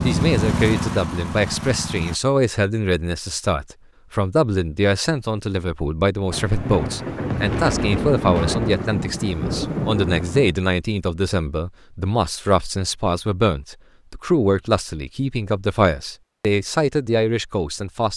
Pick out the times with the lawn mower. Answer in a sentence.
The lawn mower can be heard from 0.0 to 2.2 s.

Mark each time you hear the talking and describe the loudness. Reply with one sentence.
You can hear the talking from 0.0 to 18.1 s, at a steady volume.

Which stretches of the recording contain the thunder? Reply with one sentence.
You can hear the thunder from 6.3 to 10.6 s.